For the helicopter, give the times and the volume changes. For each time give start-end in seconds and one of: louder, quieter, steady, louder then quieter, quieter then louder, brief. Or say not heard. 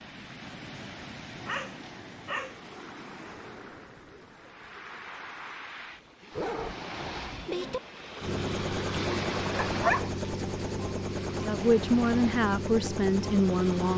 8.2-13.9 steady.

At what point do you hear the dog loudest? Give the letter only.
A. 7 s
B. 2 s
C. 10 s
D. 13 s
C.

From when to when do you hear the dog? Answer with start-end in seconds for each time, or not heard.
1.4-2.5, 6.3-7.8, 9.7-10.2.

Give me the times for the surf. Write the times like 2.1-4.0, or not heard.
0.0-13.9.